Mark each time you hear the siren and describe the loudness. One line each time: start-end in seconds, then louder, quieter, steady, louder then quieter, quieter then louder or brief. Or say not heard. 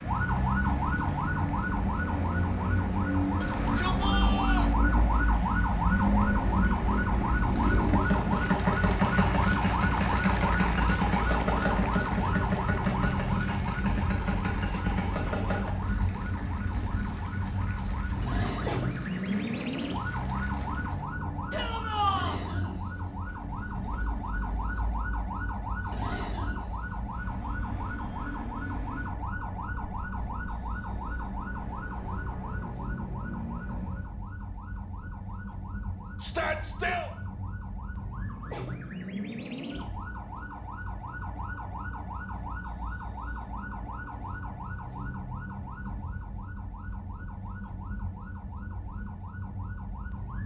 0.0-50.4 quieter.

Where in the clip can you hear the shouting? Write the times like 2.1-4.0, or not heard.
3.4-4.7, 21.5-22.4, 36.2-37.1.